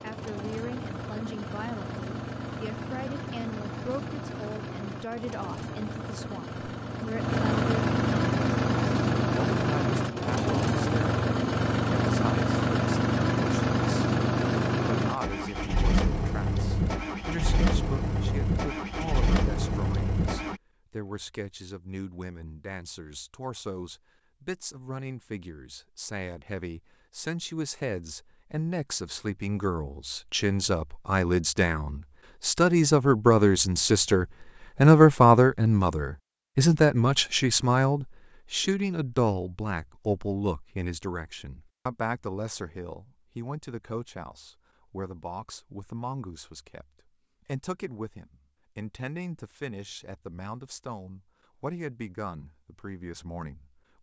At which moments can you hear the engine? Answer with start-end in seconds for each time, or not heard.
0.0-20.6.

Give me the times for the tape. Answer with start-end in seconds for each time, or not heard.
not heard.